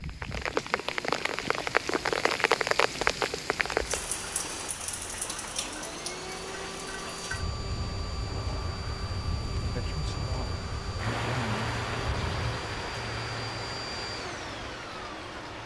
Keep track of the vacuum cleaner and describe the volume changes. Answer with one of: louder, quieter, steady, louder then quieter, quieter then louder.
louder.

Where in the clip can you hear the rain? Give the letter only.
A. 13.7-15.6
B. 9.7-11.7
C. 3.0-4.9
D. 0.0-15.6
D.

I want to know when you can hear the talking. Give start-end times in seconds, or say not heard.
9.7-11.7.